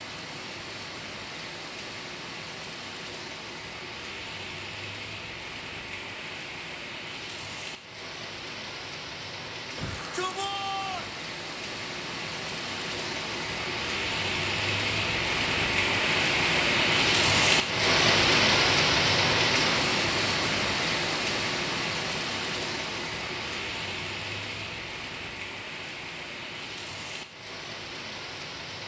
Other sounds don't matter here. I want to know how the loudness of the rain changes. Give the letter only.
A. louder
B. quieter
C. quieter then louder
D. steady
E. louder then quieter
E.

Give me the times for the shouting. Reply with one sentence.
The shouting can be heard from 9.8 to 11.2 s.